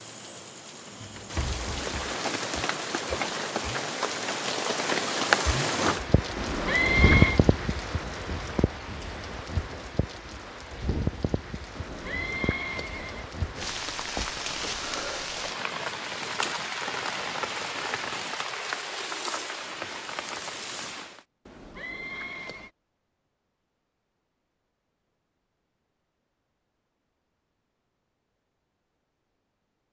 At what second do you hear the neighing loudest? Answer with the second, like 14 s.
7 s.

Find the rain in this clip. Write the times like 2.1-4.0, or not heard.
0.0-21.2.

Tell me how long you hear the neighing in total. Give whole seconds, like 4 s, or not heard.
4 s.